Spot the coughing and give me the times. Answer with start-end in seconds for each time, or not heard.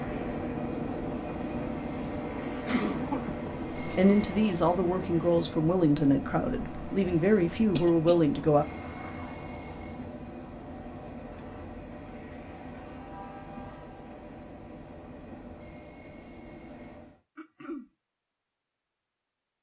2.6-4.0, 7.8-8.2, 17.4-17.9.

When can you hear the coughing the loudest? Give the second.
3 s.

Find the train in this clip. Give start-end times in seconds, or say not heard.
0.0-17.2.